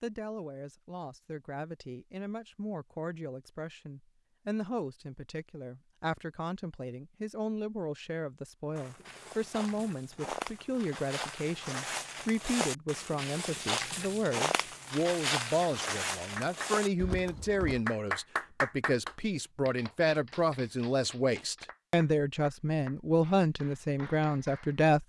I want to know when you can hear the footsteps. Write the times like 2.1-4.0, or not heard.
8.8-17.8.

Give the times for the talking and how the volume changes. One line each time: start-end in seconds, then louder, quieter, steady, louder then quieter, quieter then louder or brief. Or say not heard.
0.0-25.0 louder.